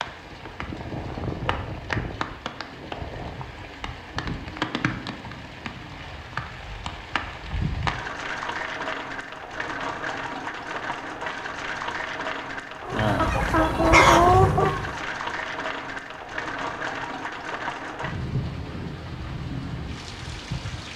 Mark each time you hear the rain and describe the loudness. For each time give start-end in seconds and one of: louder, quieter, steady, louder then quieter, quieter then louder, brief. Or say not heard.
0.0-20.9 steady.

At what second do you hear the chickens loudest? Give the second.
14 s.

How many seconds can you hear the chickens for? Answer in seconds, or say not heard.
2 s.